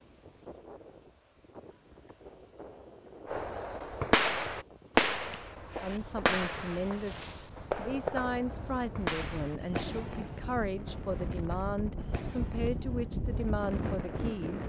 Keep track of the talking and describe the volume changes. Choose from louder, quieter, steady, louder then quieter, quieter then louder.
steady.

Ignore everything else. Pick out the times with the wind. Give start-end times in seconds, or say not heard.
0.0-14.6.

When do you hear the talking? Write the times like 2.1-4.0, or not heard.
5.8-14.6.